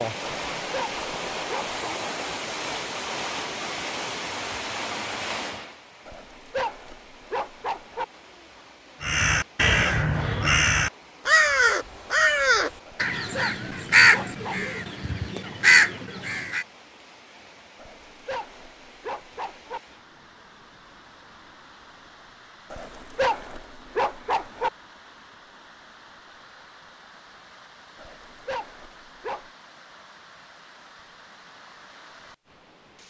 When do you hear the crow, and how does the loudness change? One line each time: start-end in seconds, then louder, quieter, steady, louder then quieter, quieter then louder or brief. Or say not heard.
9.0-16.6 steady.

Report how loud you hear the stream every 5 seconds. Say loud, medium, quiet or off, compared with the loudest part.
loud, medium, quiet, quiet, quiet, quiet, quiet.